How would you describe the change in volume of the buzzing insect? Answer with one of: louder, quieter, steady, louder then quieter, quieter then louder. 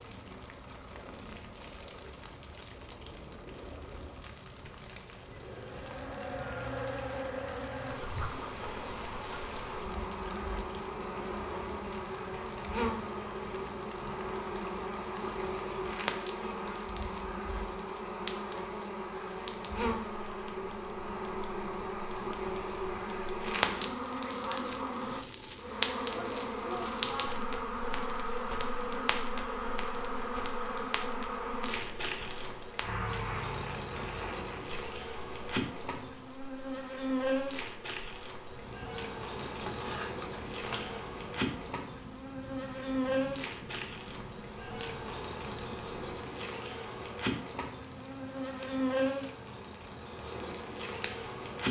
steady.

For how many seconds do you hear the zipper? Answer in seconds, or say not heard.
2 s.